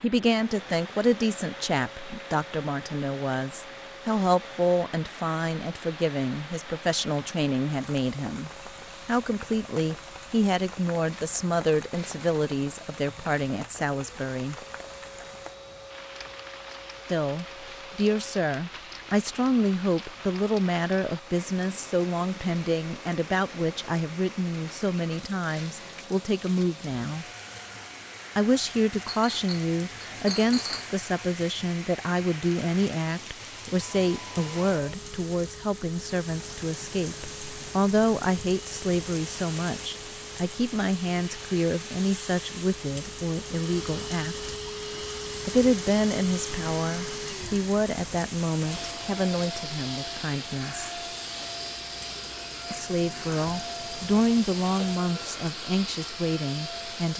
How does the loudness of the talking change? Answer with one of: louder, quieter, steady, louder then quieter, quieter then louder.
steady.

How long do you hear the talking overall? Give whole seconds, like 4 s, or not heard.
51 s.